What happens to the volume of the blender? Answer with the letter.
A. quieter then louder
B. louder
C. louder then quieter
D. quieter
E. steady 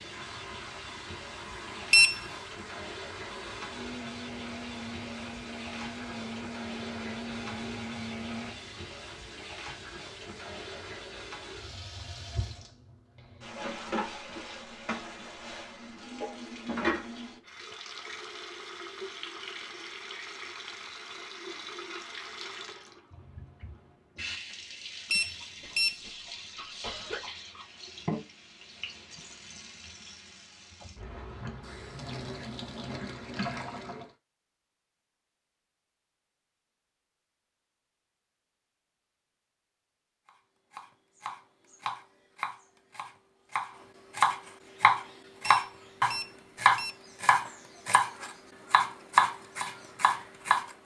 B.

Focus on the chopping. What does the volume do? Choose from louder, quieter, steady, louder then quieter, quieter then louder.
louder.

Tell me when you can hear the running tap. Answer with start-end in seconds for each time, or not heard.
0.0-34.1.